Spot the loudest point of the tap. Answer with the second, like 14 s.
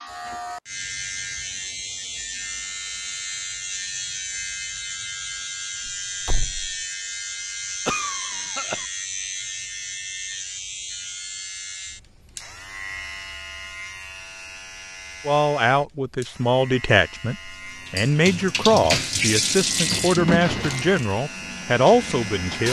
19 s.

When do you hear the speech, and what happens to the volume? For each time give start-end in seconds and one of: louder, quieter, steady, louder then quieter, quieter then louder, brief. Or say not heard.
15.2-22.6 steady.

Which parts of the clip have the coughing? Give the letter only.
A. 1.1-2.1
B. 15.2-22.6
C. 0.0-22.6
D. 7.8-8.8
D.